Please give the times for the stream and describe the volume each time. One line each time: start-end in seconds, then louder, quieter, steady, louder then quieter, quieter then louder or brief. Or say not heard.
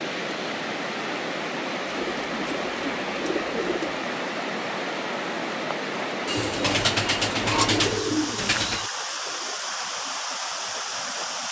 0.0-11.4 steady.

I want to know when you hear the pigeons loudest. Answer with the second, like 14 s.
8 s.